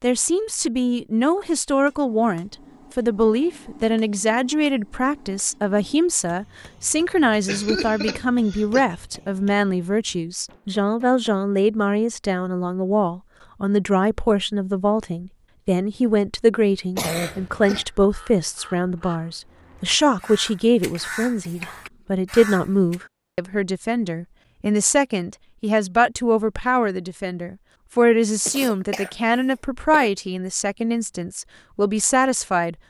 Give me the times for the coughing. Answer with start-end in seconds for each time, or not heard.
7.5-8.8, 16.9-17.9, 28.4-30.1.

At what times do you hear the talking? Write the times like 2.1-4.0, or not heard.
0.0-32.8.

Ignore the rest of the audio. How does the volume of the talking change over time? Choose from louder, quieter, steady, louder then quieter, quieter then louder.
steady.